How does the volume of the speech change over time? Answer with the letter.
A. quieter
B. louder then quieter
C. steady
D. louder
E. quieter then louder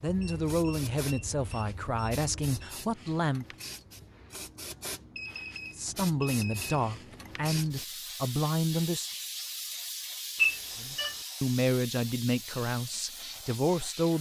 C.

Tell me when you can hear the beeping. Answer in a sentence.
You can hear the beeping from 0.1 to 2.8 s, from 5.2 to 6.7 s and from 10.3 to 11.2 s.